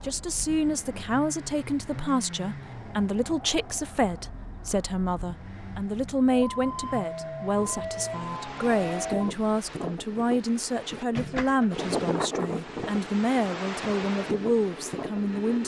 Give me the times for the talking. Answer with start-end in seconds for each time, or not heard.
0.0-15.6.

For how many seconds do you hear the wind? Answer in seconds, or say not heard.
8 s.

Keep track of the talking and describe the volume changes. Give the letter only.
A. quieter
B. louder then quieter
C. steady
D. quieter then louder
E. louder
C.